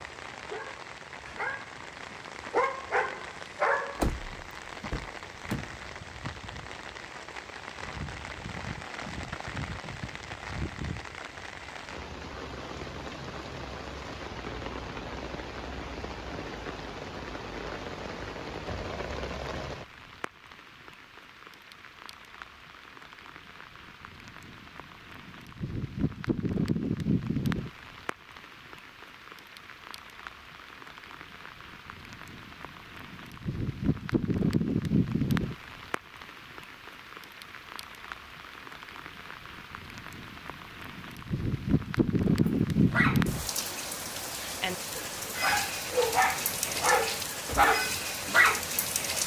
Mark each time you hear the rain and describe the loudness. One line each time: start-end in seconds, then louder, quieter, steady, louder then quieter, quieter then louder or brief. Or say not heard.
0.0-49.2 louder.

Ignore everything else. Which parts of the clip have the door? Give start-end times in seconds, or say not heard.
4.0-5.8.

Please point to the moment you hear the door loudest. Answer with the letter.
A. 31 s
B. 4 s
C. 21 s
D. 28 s
B.